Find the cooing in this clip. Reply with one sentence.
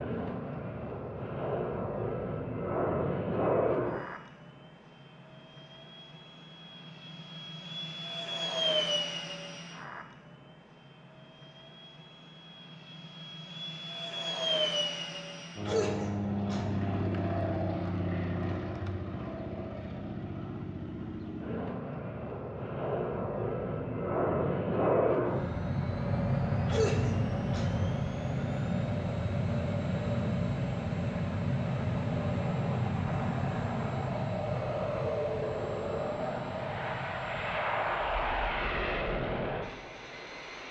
The cooing can't be heard in this clip.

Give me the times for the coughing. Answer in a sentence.
You can hear the coughing from 15.7 to 16.8 s and from 26.6 to 27.9 s.